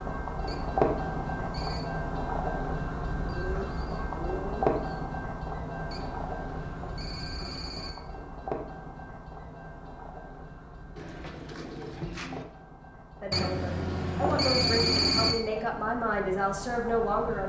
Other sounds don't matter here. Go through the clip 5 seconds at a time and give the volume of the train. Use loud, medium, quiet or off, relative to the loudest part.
loud, medium, quiet, medium.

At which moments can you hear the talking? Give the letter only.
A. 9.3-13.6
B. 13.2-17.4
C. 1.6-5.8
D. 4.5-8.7
B.